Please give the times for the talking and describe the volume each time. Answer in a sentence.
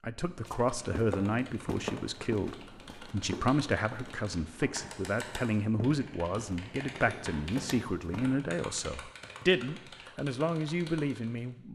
You can hear the talking from 0.0 to 11.7 s, at a steady volume.